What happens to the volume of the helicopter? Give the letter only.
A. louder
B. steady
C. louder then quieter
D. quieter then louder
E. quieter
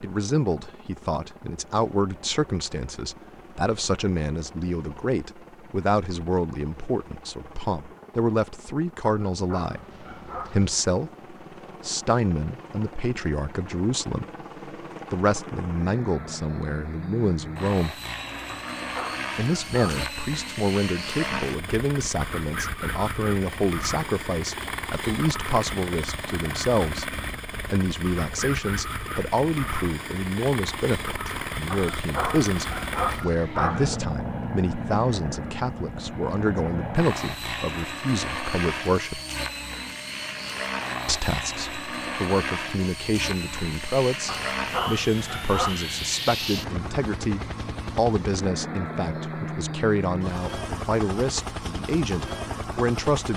A.